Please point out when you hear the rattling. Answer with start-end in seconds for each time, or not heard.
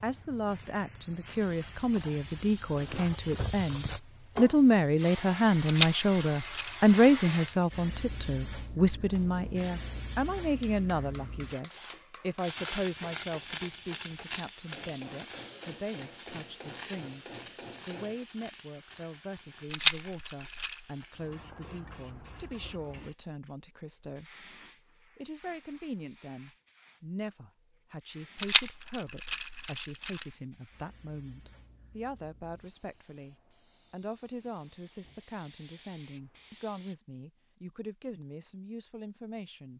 5.7-7.5, 19.7-20.8, 28.4-30.2.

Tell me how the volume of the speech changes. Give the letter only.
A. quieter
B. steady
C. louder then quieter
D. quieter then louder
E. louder
A.